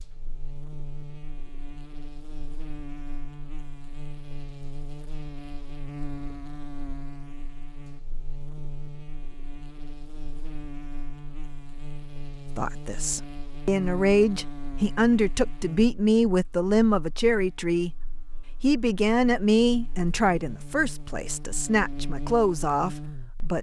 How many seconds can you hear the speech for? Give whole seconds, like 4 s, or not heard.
10 s.